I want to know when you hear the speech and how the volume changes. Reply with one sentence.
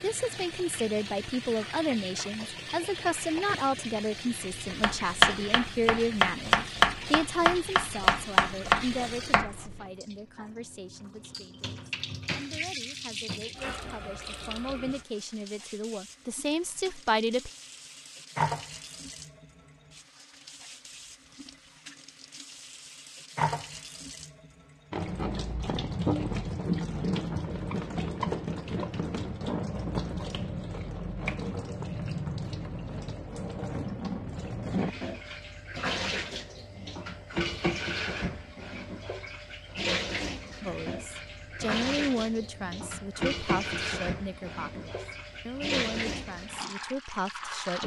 The speech can be heard from 0.0 to 17.5 s, getting quieter then louder; and from 40.6 to 47.8 s, getting quieter.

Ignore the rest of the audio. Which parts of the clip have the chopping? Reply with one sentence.
You can hear the chopping from 4.7 to 9.8 s.